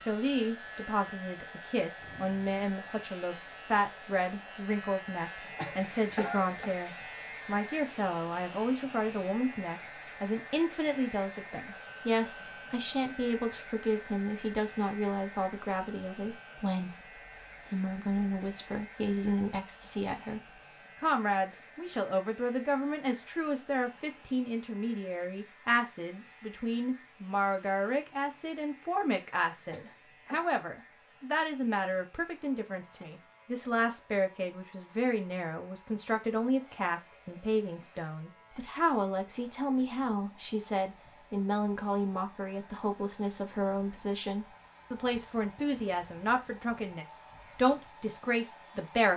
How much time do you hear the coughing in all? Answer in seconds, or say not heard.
2 s.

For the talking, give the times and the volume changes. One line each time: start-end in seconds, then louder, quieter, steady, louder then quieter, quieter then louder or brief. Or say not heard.
0.1-49.1 steady.